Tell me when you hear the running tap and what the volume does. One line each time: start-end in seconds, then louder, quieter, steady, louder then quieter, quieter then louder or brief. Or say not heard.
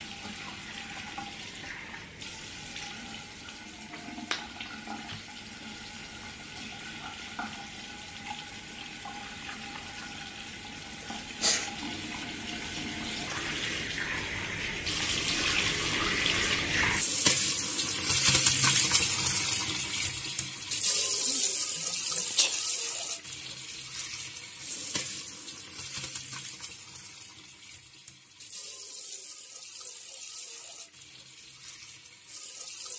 0.0-32.9 louder then quieter.